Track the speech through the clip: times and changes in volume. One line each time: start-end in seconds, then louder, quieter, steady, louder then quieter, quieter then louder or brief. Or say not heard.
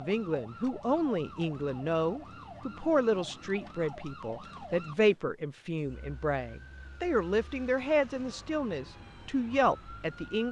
0.0-10.4 steady.